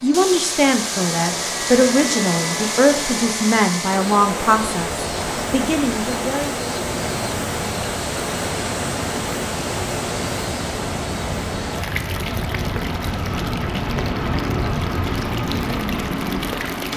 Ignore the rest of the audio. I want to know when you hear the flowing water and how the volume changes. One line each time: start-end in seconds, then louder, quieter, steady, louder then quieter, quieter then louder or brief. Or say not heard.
0.0-16.9 quieter.